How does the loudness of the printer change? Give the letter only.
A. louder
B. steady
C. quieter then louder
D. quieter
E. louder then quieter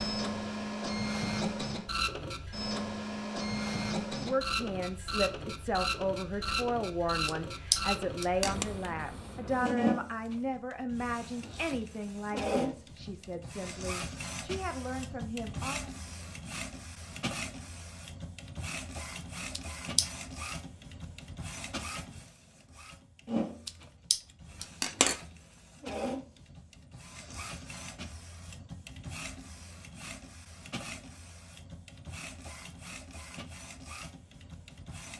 D.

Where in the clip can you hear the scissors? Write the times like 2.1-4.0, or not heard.
7.2-8.7, 19.6-20.1, 23.6-25.1.